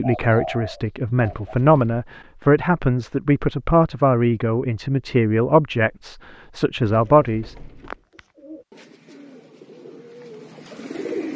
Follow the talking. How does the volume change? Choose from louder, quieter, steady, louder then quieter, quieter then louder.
steady.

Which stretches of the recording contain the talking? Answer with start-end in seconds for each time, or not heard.
0.0-7.5.